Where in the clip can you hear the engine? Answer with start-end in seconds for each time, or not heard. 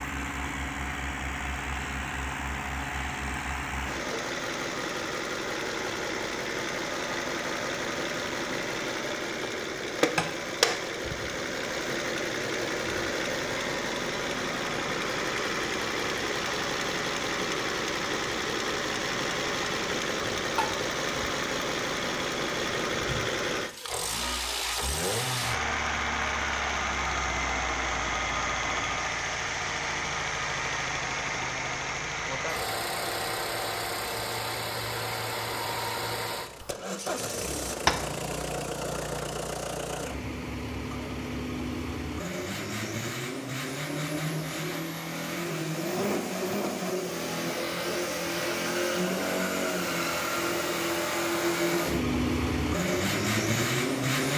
0.0-54.3.